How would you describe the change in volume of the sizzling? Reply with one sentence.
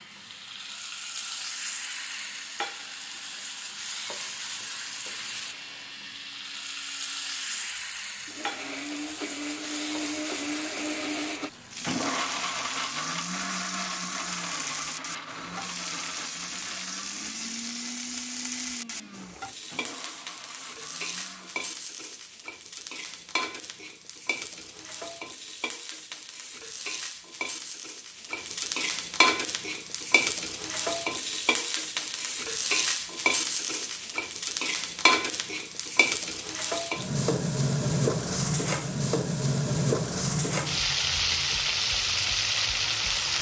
The loudness of the sizzling goes up.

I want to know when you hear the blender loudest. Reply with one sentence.
The loudest moment of the blender is at 12 seconds.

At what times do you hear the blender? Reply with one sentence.
The blender can be heard from 0.0 to 21.8 s.